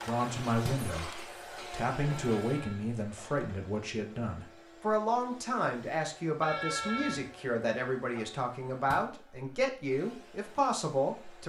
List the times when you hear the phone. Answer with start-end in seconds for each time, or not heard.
2.0-3.5, 6.4-7.3.